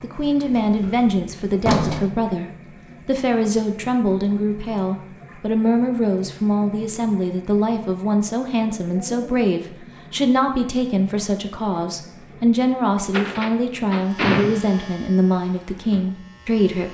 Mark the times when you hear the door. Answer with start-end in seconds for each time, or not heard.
0.5-2.1, 13.1-14.8.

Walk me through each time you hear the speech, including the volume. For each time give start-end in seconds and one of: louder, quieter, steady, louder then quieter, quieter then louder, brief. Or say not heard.
0.0-16.8 steady.